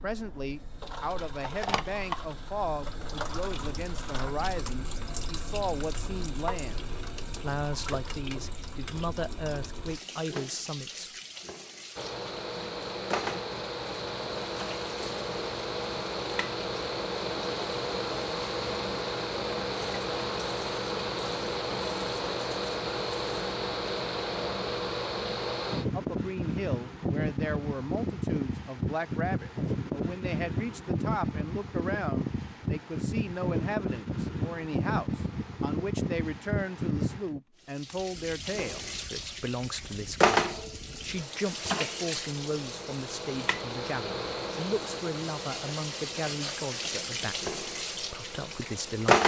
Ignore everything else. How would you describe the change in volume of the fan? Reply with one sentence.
The volume of the fan goes down.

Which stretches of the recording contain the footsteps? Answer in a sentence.
The footsteps can't be heard in this clip.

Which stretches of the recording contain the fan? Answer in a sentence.
The fan can be heard from 11.9 to 49.2 s.